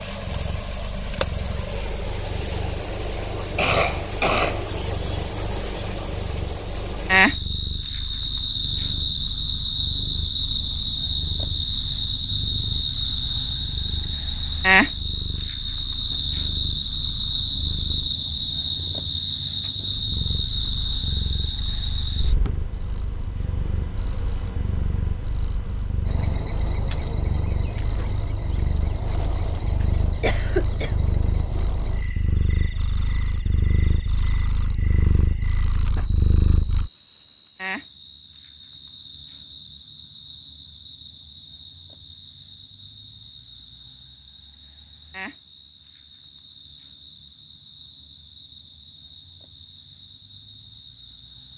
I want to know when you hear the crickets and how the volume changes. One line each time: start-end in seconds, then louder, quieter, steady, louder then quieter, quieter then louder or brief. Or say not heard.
0.0-51.5 quieter.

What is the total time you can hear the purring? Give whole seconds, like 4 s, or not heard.
37 s.